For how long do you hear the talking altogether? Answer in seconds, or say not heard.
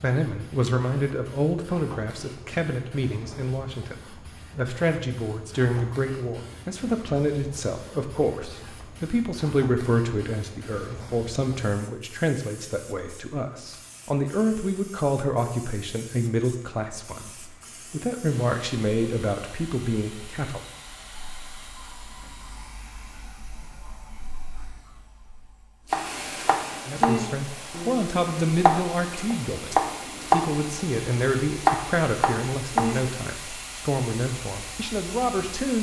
28 s.